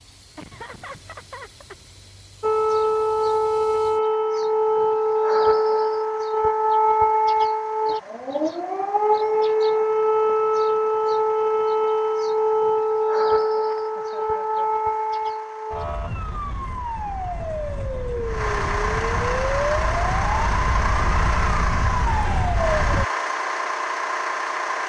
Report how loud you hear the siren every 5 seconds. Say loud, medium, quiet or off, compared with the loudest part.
loud, loud, loud, medium, medium.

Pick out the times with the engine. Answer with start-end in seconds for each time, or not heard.
0.0-24.8.